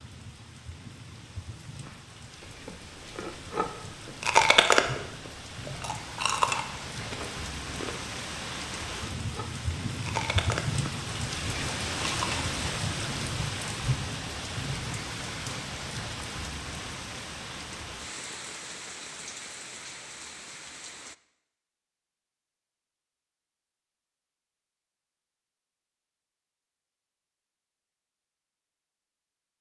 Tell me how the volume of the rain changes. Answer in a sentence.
The volume of the rain goes up, then down.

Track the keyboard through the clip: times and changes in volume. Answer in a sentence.
The keyboard can't be heard in this clip.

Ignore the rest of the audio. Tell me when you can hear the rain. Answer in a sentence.
You can hear the rain from 0.0 to 21.1 s.